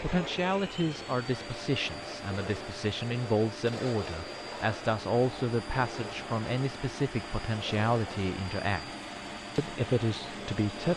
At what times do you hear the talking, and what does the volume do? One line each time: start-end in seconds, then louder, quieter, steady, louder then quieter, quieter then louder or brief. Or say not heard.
0.0-8.8 steady
9.6-10.9 brief.